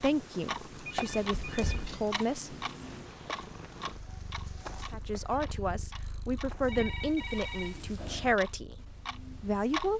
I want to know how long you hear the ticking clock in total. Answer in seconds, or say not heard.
10 s.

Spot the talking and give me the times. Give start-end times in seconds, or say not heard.
0.0-2.5, 4.9-9.9.